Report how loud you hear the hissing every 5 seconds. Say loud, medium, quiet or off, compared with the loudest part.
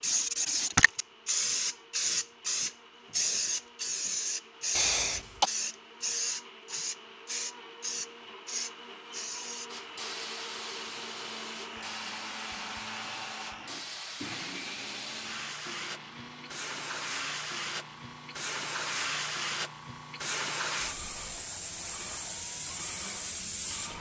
loud, medium, quiet, medium, medium.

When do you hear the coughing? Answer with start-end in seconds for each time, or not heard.
4.8-5.5.